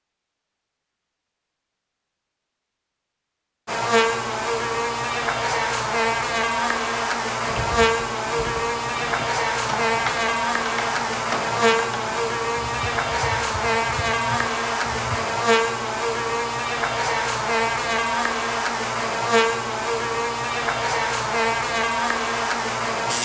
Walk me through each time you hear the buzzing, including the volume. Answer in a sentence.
The buzzing can be heard from 3.6 to 23.1 s, at a steady volume.